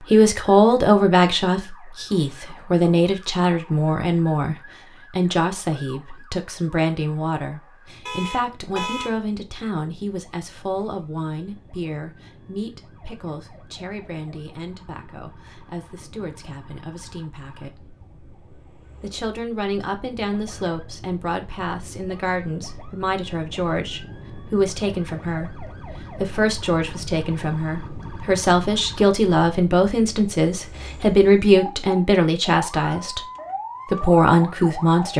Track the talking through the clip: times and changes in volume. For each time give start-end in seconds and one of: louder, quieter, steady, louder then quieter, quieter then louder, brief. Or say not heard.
0.0-17.9 quieter
18.9-33.2 louder
33.9-35.1 brief.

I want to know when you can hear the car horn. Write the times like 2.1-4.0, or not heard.
8.1-9.1.